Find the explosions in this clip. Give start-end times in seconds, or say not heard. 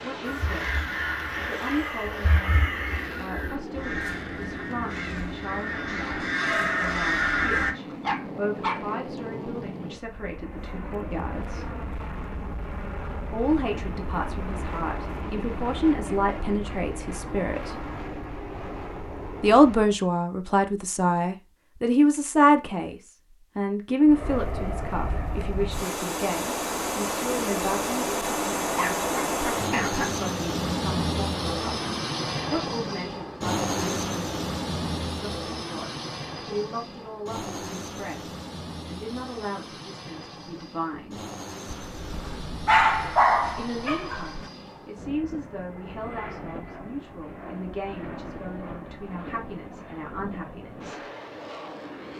not heard.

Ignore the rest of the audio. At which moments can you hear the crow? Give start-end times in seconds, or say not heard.
0.2-7.8.